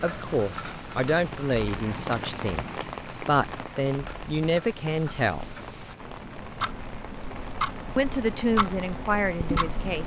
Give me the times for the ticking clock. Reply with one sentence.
You can hear the ticking clock from 0.0 to 10.0 s.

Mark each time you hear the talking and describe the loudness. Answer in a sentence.
The talking can be heard from 0.0 to 5.5 s, getting quieter then louder; and briefly from 8.0 to 10.0 s.